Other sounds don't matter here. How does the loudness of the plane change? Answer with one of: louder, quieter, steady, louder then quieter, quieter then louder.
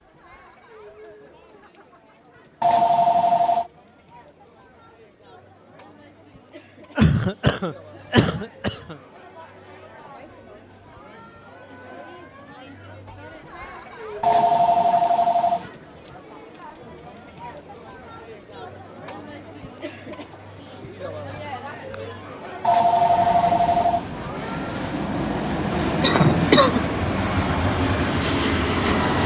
louder.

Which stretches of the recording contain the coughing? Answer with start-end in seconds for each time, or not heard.
7.0-8.9, 26.0-26.9.